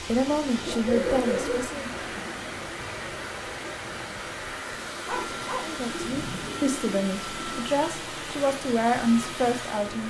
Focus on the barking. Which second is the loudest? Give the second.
1 s.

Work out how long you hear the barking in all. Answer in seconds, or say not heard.
3 s.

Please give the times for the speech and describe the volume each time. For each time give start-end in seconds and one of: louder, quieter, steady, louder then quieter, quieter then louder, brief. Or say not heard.
0.0-1.9 brief
5.6-10.0 louder.